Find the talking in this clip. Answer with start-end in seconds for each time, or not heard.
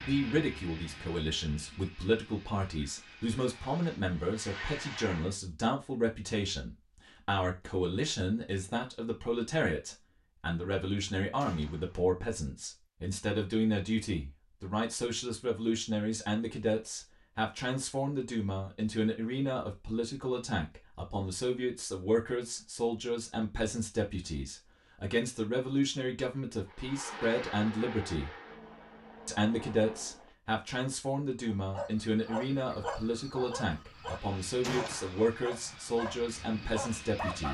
0.1-28.4, 29.2-37.4.